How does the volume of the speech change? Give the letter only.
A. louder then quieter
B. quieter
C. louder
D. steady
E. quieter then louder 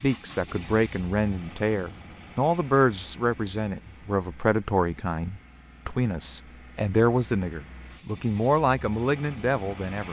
D.